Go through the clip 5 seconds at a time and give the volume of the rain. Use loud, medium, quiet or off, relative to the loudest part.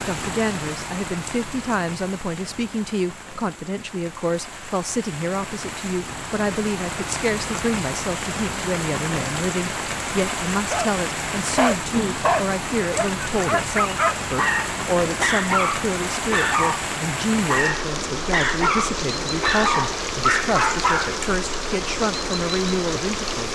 medium, loud, loud, loud, loud.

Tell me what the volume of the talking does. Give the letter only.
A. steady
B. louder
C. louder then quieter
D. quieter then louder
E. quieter
A.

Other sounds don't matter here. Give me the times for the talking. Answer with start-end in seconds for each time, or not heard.
0.0-23.5.